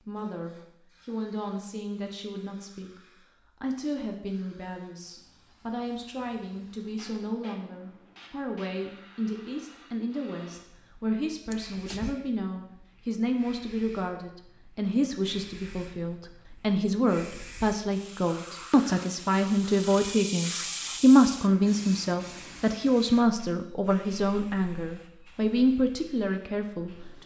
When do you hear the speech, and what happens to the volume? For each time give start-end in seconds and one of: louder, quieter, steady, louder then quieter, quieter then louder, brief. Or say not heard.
0.1-27.2 louder.